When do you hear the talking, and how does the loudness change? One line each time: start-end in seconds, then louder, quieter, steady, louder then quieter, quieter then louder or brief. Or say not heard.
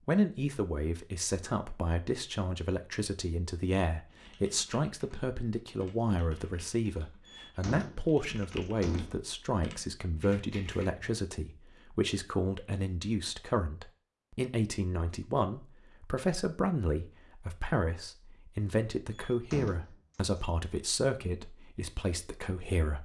0.1-22.9 steady.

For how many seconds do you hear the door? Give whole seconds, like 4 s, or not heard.
3 s.